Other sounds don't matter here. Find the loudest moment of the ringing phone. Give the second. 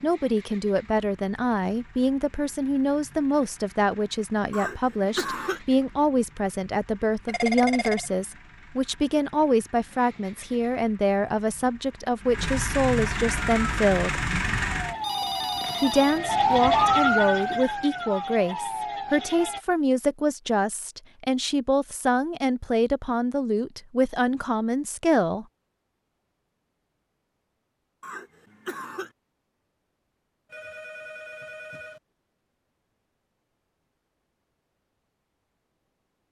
8 s.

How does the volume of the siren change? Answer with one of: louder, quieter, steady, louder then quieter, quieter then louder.
louder then quieter.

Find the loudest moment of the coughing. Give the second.
5 s.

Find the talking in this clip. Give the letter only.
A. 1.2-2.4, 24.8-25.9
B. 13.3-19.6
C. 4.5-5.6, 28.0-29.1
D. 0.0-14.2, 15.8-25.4
D.